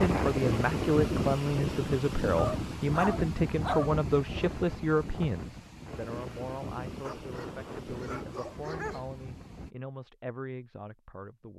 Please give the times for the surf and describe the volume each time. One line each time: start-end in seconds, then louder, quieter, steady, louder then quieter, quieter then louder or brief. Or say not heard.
0.0-9.8 quieter.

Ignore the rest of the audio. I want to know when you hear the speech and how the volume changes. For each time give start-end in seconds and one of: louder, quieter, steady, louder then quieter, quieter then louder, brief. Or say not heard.
0.0-11.5 quieter.